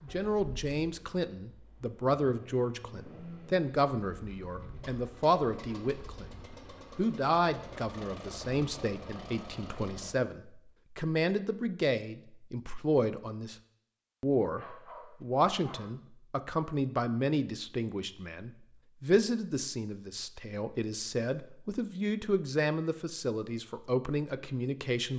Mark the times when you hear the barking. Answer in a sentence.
The barking can be heard from 14.6 to 15.9 s.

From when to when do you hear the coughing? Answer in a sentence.
You can't hear the coughing here.